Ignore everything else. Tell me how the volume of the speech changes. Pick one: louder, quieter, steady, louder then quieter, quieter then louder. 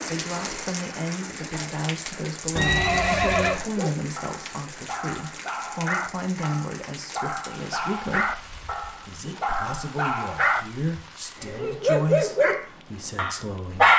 steady.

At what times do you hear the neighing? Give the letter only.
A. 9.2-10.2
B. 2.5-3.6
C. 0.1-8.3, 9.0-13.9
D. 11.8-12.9
B.